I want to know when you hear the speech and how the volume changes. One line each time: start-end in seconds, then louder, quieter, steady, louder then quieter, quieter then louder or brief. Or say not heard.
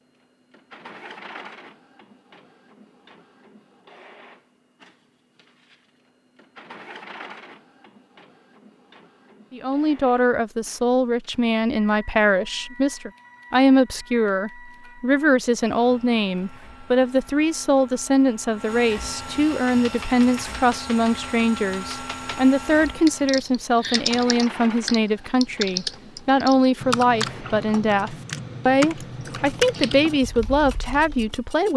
9.5-31.7 steady.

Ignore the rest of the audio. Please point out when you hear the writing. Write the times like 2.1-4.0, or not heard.
not heard.